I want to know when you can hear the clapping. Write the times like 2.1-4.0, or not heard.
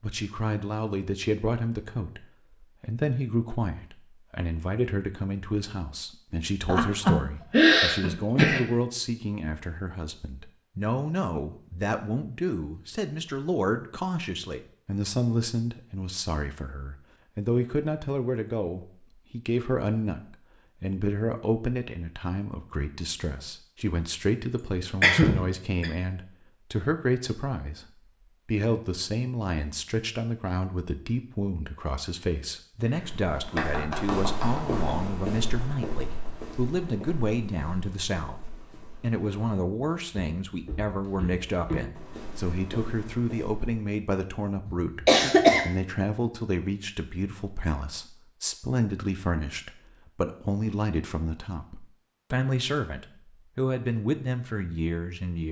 32.9-35.1.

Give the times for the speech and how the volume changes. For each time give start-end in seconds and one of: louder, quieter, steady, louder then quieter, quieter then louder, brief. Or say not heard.
0.0-27.9 steady
28.4-55.4 steady.